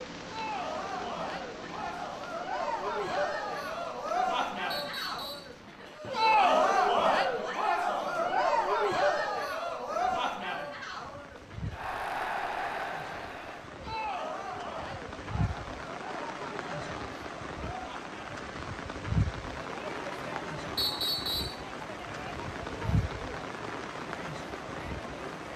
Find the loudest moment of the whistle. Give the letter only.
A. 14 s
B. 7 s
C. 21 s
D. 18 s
C.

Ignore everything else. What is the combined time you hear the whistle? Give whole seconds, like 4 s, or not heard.
2 s.